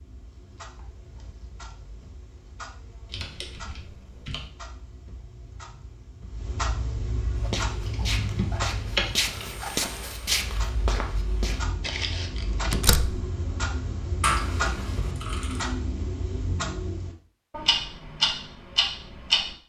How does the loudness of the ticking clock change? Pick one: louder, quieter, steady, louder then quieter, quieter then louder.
louder.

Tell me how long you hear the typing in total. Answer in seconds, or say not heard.
5 s.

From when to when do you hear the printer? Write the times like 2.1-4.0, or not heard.
not heard.